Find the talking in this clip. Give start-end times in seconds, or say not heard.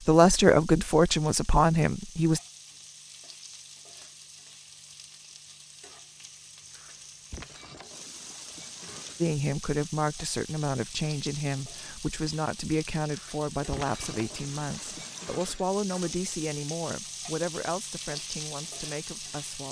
0.1-2.4, 9.2-19.6.